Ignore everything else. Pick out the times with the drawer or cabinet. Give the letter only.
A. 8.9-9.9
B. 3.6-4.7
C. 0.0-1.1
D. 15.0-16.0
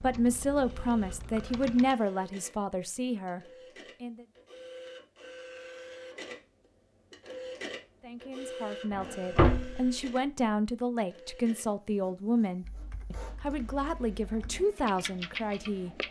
A.